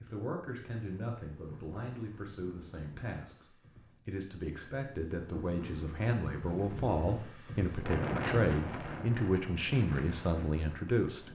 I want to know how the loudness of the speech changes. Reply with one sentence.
The loudness of the speech goes up.